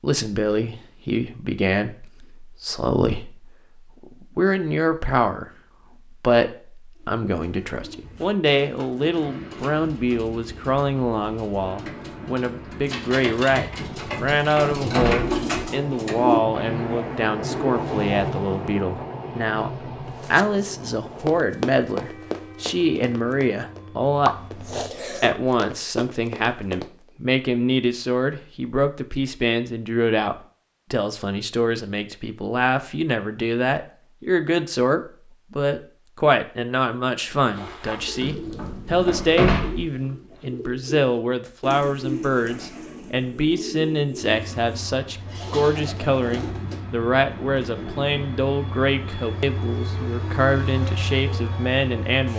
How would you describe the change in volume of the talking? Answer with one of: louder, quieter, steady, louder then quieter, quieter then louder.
steady.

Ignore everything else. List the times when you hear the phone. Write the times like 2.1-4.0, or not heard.
not heard.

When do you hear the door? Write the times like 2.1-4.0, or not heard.
13.8-15.3, 38.2-39.9.